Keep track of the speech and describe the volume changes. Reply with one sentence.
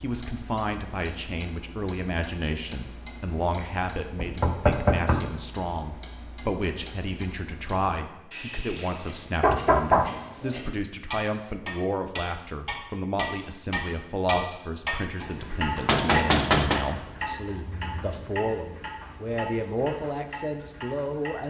The loudness of the speech stays about the same.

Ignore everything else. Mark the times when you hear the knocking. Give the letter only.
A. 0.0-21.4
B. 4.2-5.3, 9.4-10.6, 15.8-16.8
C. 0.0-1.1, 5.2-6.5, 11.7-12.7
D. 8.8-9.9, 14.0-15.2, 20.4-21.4
B.